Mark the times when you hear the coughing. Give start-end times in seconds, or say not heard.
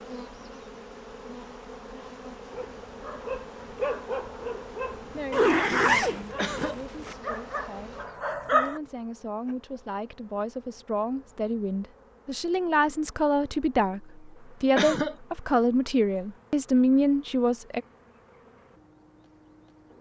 6.3-6.8, 14.8-15.2.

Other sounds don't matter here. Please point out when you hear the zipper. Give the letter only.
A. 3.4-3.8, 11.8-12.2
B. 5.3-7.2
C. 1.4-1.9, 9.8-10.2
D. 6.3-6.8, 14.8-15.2
B.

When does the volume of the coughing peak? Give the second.
15 s.